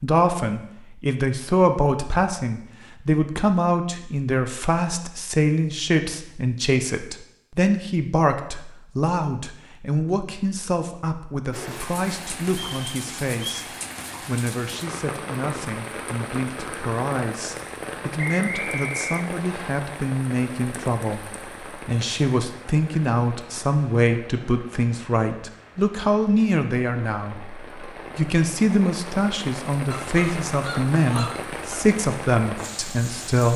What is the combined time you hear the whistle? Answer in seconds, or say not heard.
3 s.